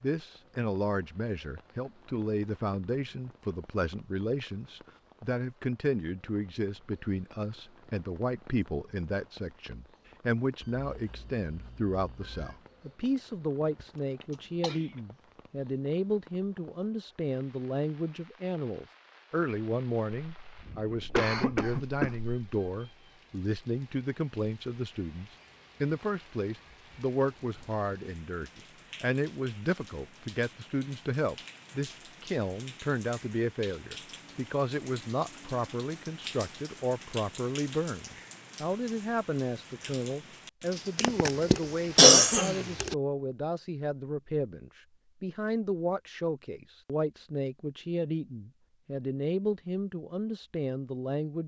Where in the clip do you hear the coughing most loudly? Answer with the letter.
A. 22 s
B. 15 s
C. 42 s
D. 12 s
C.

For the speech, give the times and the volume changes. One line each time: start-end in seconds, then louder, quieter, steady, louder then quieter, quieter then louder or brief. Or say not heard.
0.0-51.4 steady.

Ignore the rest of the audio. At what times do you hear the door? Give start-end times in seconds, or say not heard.
not heard.